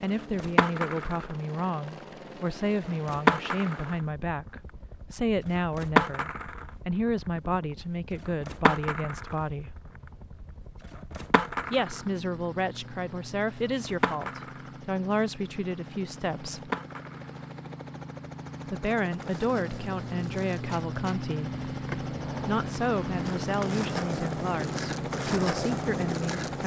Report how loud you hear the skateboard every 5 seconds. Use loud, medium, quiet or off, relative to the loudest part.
loud, loud, medium, medium, medium, medium.